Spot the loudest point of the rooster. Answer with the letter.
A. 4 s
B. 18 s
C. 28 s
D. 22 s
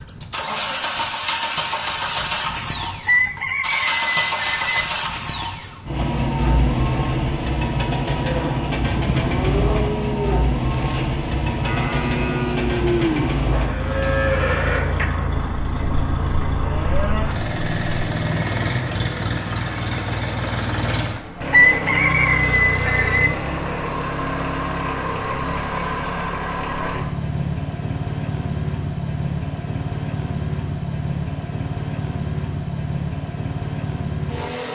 D.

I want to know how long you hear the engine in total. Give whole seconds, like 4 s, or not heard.
35 s.